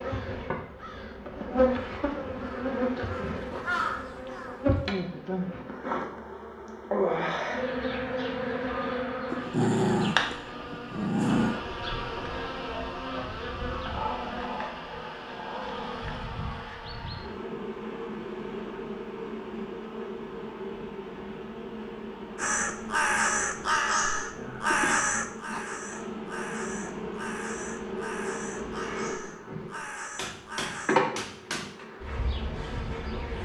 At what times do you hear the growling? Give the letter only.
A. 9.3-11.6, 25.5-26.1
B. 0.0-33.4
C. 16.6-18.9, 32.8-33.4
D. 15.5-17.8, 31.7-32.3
A.